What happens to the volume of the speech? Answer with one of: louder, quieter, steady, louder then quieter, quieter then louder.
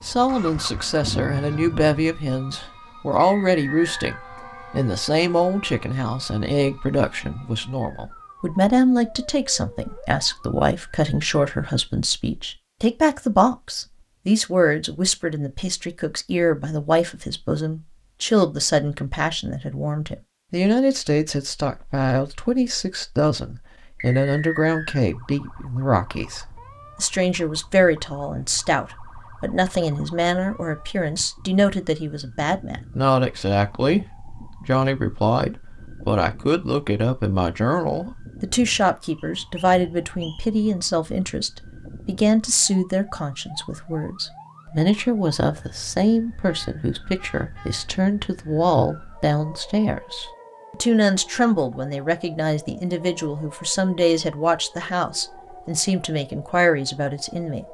steady.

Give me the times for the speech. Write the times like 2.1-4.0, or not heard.
0.0-57.7.